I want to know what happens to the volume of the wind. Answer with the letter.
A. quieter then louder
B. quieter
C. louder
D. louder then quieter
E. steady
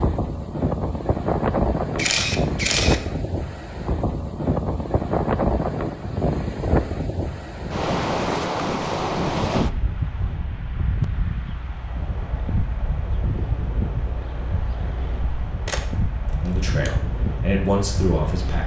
B.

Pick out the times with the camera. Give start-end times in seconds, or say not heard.
1.9-3.0, 15.7-16.9.